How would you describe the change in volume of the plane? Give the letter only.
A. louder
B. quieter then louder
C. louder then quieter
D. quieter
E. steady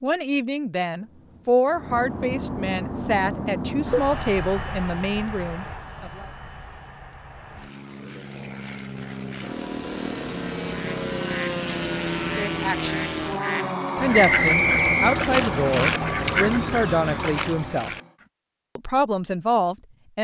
B.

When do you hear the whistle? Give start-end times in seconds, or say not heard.
14.2-15.2.